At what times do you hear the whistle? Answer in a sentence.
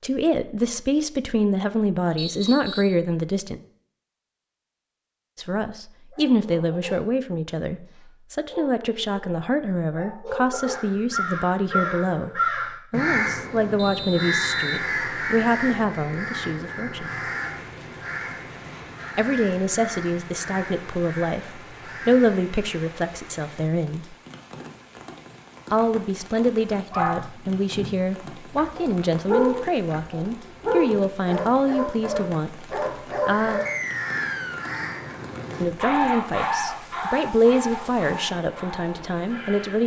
The whistle can be heard from 2.1 to 3.0 s, from 13.8 to 14.8 s and from 33.6 to 34.8 s.